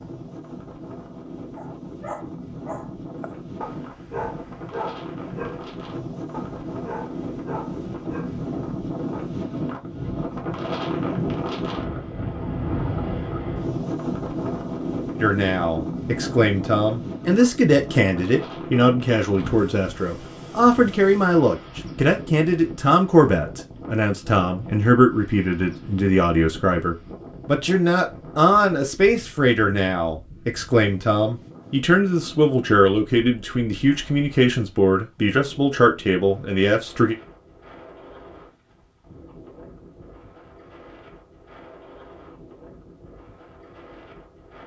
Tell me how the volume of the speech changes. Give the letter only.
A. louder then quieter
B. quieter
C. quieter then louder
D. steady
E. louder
D.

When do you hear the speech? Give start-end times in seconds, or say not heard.
15.2-37.1.